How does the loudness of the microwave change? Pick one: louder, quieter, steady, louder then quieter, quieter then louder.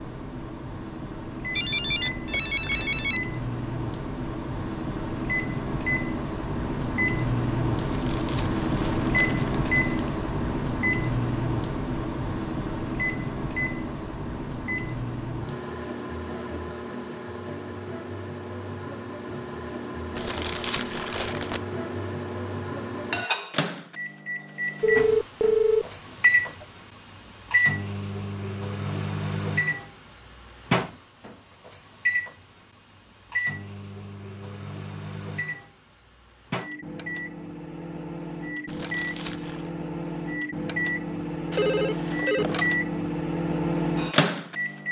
steady.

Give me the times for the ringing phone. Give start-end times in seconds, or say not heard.
1.6-3.2, 24.8-26.6, 41.5-42.7.